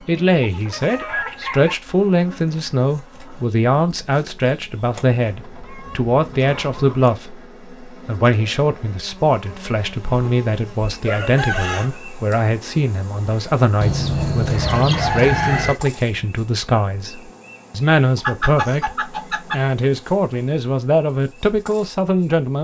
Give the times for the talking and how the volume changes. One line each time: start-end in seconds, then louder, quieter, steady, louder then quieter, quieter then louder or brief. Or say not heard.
0.1-22.5 steady.